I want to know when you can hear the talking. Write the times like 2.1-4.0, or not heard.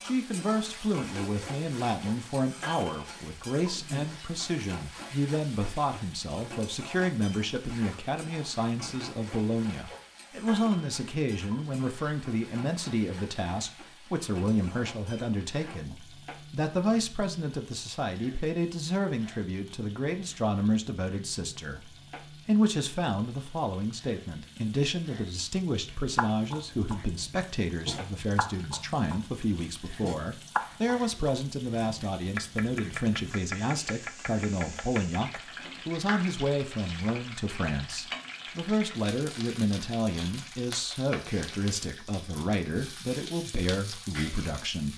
0.0-44.9.